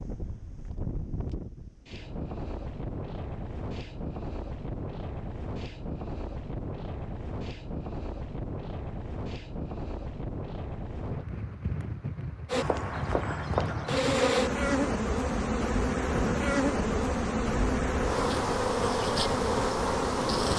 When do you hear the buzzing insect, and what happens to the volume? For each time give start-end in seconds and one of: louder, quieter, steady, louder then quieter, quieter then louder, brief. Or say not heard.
12.4-20.5 steady.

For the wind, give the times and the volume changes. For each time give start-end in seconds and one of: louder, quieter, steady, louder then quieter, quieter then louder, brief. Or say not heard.
0.0-20.5 steady.